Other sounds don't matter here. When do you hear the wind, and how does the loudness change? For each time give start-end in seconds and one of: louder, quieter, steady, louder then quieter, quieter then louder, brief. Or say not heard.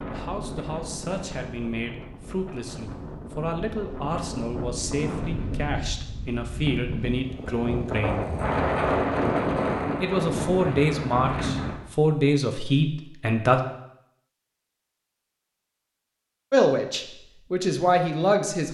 0.0-11.8 louder.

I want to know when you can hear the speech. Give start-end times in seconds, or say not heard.
0.1-8.2, 10.0-13.6, 16.5-18.6.